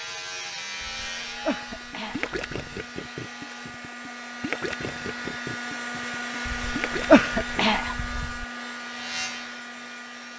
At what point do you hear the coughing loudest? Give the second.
7 s.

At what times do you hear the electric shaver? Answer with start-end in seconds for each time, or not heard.
0.0-3.8, 8.7-10.3.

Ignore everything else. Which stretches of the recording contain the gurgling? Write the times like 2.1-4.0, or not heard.
1.5-7.7.